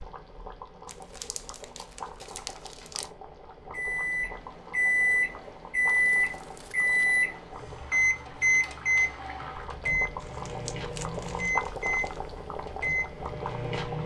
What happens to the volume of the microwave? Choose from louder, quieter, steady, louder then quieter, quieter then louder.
quieter.